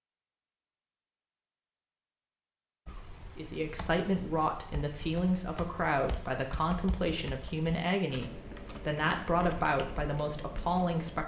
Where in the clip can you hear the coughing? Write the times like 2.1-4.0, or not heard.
not heard.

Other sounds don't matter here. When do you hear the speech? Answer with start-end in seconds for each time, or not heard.
3.4-11.2.